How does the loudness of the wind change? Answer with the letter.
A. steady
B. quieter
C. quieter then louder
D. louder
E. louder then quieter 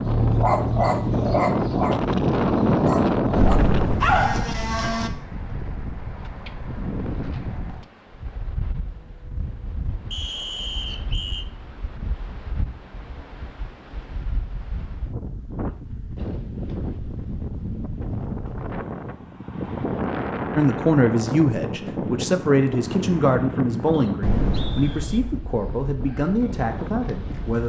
C.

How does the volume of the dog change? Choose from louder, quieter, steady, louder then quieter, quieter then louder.
quieter then louder.